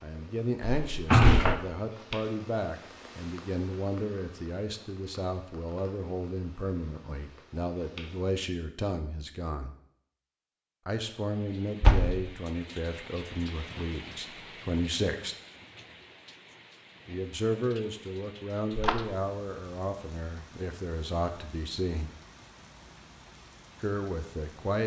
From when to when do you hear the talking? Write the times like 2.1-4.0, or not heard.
0.0-9.8, 10.8-15.3, 17.1-22.1, 23.8-24.8.